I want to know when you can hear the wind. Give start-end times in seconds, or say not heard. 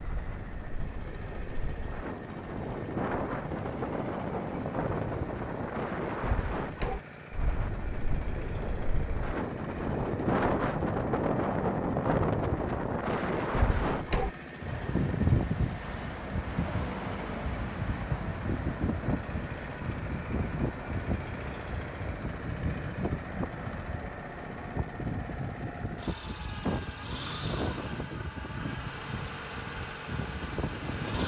0.0-31.2.